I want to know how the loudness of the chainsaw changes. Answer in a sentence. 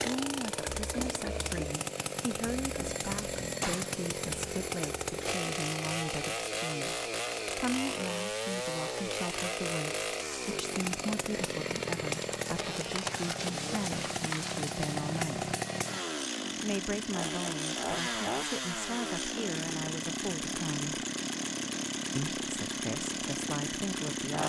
The loudness of the chainsaw stays about the same.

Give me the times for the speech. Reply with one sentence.
You can hear the speech from 0.0 to 15.5 s, from 16.6 to 21.1 s and from 22.1 to 24.4 s.